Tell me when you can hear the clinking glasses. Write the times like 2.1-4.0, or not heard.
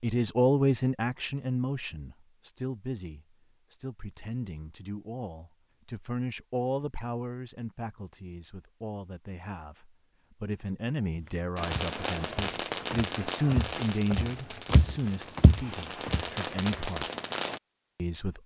not heard.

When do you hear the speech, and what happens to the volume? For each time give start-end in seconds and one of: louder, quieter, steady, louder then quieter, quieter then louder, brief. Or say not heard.
0.0-17.1 quieter then louder
17.9-18.4 brief.